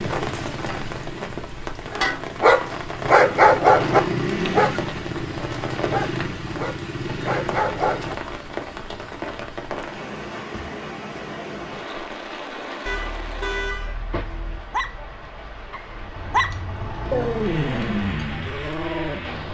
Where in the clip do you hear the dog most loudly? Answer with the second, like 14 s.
4 s.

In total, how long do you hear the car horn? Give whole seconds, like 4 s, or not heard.
2 s.